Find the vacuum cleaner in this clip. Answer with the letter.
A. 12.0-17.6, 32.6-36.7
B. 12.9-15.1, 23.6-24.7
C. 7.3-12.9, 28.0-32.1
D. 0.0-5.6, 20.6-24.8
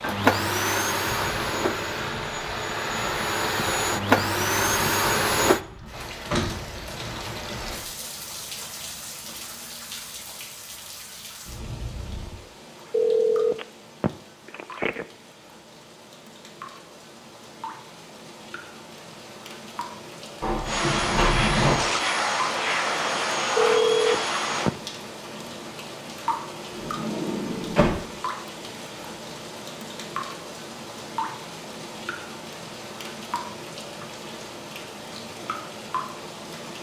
D.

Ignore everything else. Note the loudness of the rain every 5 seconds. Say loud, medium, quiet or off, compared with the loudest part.
loud, loud, medium, medium, loud, loud, loud, loud.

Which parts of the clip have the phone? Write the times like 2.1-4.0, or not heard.
12.9-15.1, 23.6-24.7.